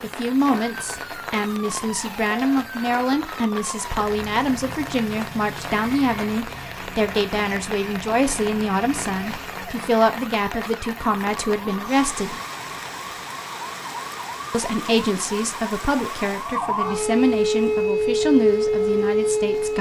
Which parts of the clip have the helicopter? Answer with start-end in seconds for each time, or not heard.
not heard.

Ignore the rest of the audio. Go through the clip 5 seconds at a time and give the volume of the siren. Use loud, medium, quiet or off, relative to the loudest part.
quiet, quiet, quiet, loud.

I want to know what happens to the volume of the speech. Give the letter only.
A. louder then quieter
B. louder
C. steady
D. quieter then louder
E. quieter
C.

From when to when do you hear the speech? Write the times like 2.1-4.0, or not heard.
0.0-12.3, 14.5-19.7.